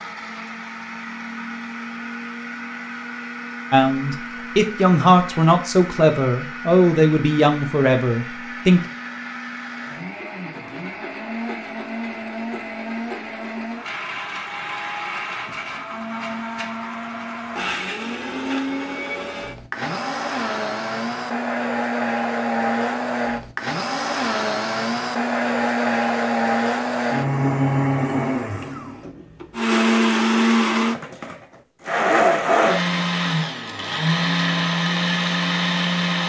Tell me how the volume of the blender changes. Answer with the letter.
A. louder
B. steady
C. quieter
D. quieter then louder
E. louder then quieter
A.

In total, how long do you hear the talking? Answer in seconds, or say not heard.
5 s.